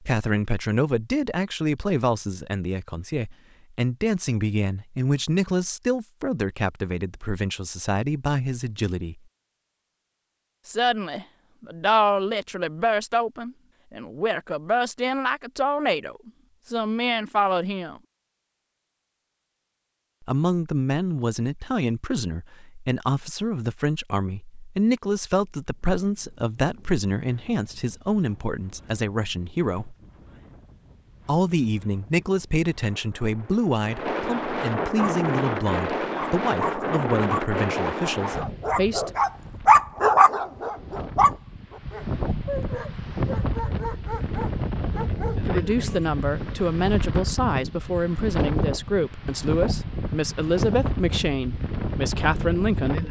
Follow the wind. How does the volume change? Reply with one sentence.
The volume of the wind goes up.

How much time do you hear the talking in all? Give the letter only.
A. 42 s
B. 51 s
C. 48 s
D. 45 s
A.